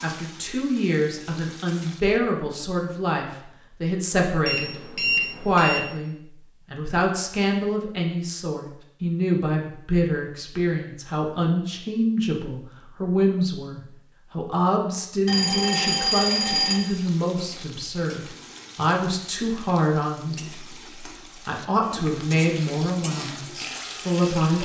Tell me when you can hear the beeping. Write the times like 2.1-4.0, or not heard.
4.5-5.8, 15.2-16.8.